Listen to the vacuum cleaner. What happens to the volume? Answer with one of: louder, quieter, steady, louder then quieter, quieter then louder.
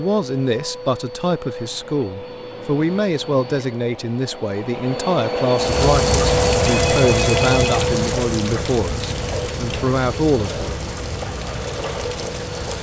louder then quieter.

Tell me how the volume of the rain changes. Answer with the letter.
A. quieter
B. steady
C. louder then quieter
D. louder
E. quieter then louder
A.